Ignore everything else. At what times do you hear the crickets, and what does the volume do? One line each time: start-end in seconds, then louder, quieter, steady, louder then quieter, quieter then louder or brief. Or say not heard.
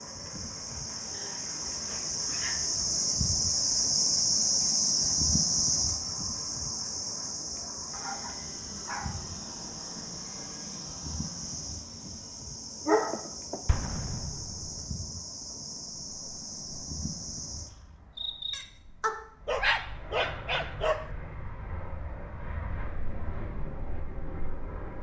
0.0-19.1 quieter.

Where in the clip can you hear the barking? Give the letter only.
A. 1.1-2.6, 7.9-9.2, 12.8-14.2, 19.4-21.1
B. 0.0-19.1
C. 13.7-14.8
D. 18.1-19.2
A.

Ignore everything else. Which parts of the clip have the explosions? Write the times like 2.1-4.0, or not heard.
13.7-14.8.